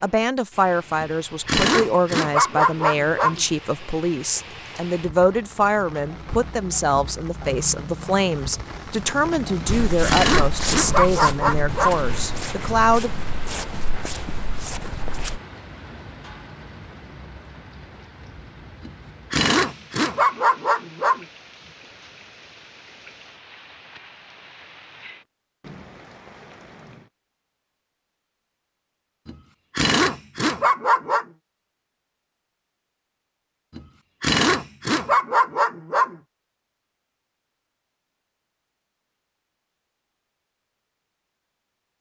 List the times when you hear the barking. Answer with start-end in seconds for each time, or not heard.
1.0-3.5, 9.6-12.1, 18.9-21.2, 29.2-31.2, 33.8-36.1.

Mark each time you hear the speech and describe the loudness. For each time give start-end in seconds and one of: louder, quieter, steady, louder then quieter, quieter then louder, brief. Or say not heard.
0.0-13.1 steady.